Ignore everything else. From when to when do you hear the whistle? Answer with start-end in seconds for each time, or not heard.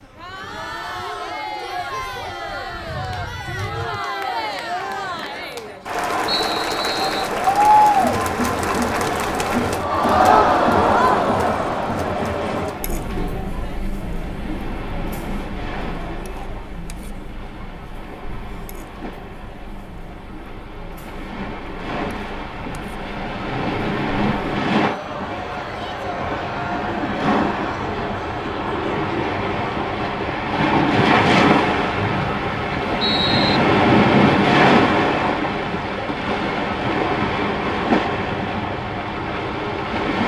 6.2-7.3, 31.9-33.6.